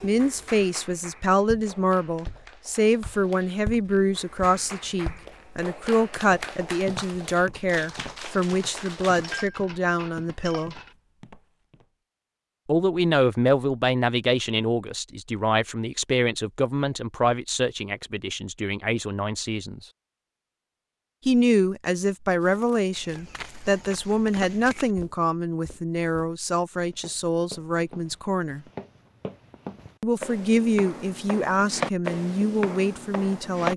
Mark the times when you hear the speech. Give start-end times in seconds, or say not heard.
0.0-10.8, 12.7-19.9, 21.2-28.6, 30.0-33.7.